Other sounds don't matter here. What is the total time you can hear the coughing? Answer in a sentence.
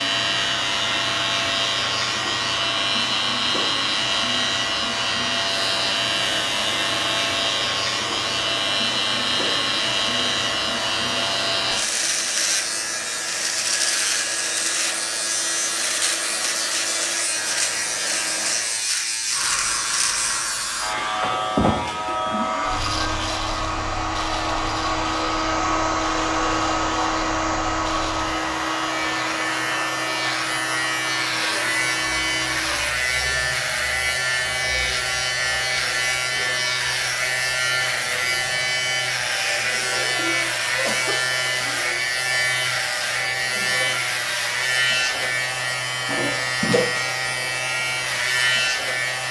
You can hear the coughing for 2 seconds altogether.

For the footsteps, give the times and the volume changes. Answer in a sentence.
You can't hear the footsteps here.